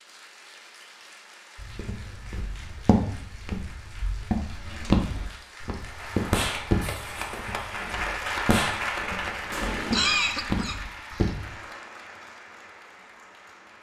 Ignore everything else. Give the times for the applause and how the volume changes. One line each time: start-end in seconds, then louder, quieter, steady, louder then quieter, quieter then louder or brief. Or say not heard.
0.0-13.7 louder then quieter.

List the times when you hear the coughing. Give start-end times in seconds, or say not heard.
9.9-11.3.